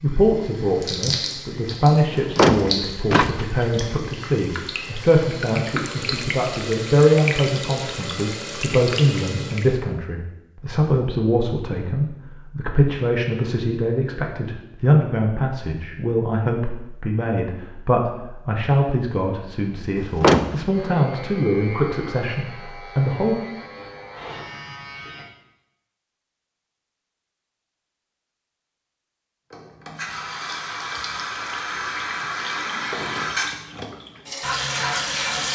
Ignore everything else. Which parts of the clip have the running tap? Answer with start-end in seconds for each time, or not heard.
0.1-9.8, 29.5-35.5.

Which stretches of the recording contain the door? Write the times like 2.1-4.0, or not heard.
2.1-4.0, 19.9-20.6.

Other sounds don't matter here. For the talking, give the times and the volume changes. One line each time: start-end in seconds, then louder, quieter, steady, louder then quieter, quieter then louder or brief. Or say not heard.
0.0-23.4 steady.